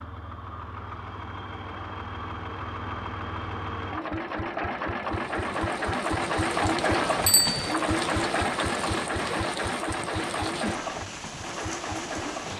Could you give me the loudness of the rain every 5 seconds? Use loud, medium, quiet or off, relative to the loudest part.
off, loud, loud.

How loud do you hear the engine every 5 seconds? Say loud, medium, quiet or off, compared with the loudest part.
medium, loud, medium.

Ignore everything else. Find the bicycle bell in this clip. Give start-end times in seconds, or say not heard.
7.2-7.8.